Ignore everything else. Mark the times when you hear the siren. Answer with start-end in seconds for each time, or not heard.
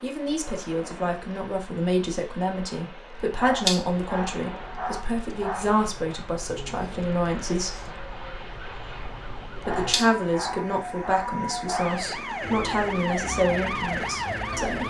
3.1-14.8.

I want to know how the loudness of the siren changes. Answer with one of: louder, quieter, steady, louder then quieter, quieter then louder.
louder.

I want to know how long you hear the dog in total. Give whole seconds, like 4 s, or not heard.
5 s.